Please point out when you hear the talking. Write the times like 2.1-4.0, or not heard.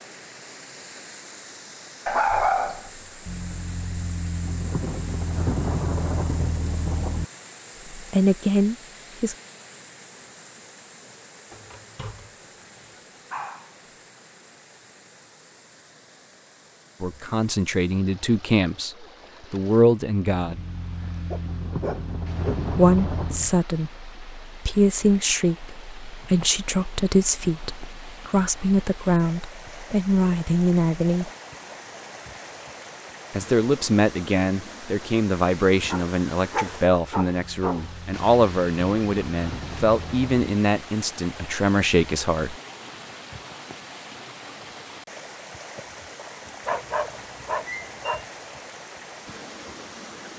7.9-9.3, 17.0-20.6, 22.7-31.3, 33.3-42.5.